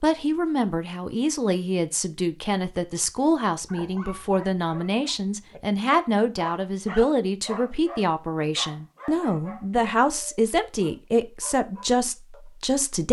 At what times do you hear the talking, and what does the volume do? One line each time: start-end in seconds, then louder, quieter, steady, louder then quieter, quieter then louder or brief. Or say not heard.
0.0-13.0 steady.